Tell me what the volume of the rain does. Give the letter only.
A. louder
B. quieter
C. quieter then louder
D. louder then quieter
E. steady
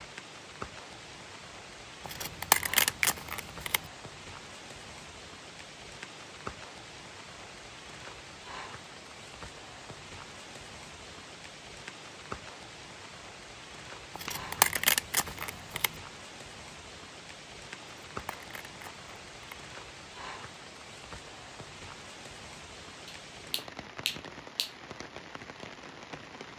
E.